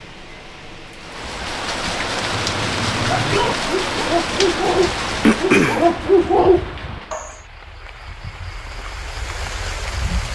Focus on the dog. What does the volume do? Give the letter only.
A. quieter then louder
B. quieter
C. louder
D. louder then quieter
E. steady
C.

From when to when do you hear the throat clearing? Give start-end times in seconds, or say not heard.
4.4-5.9.